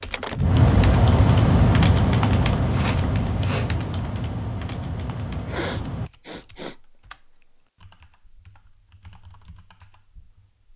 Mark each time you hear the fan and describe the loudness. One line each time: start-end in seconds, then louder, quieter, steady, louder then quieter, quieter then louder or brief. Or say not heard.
0.0-6.1 quieter.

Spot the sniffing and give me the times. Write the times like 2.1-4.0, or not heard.
2.7-3.7, 5.5-6.8.